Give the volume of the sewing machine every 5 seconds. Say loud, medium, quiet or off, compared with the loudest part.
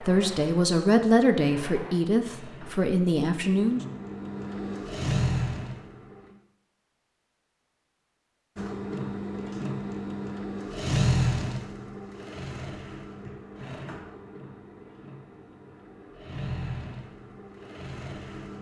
medium, loud, loud, medium.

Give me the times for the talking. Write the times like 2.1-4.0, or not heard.
0.0-3.8.